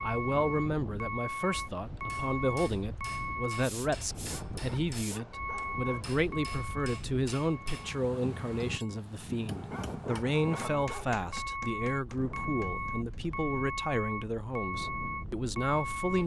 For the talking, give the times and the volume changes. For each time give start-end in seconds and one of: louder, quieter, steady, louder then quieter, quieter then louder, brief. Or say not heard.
0.0-16.2 steady.